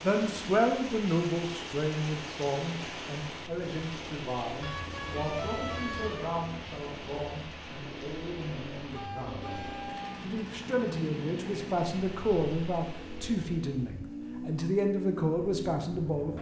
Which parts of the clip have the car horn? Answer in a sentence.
You can hear the car horn from 4.6 to 6.3 s and from 8.9 to 10.2 s.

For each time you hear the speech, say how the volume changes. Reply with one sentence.
You can hear the speech from 0.0 to 16.3 s, getting quieter then louder.